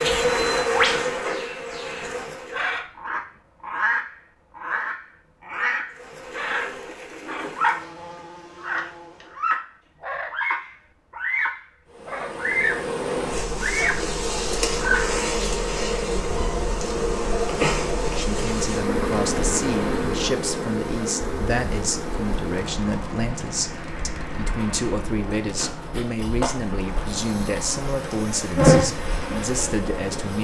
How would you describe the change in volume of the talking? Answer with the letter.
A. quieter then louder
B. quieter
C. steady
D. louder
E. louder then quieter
C.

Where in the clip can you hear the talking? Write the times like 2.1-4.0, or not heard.
18.1-30.4.